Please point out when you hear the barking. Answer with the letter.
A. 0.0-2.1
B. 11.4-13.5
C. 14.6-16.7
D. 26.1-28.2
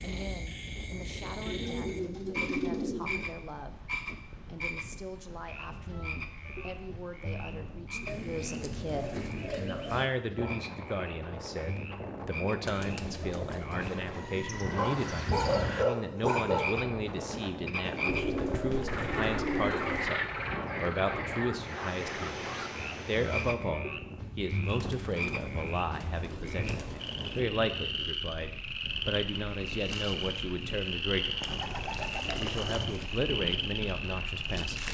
C.